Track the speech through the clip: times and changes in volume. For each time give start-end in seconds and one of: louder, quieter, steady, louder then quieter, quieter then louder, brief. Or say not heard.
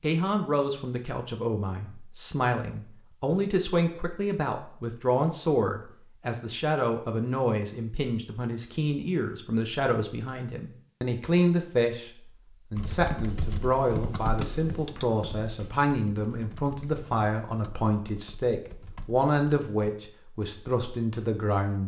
0.0-21.8 steady.